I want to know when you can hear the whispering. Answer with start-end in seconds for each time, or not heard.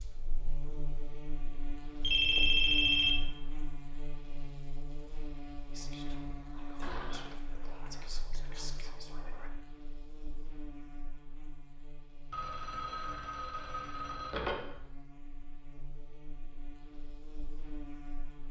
5.7-9.5.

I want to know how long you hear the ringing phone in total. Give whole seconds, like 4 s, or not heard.
4 s.